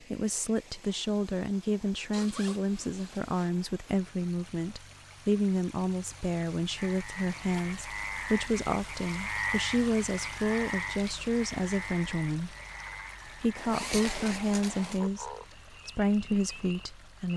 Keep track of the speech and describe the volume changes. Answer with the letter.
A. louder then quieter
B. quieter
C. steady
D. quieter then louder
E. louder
C.